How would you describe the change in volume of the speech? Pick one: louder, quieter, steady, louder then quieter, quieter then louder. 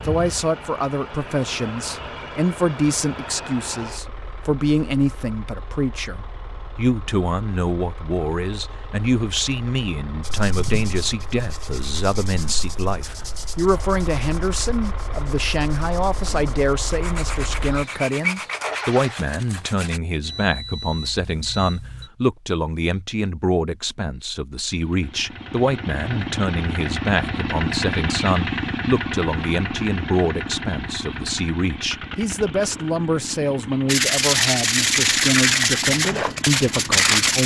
steady.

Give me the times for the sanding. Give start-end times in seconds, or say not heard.
10.2-20.0, 33.9-37.4.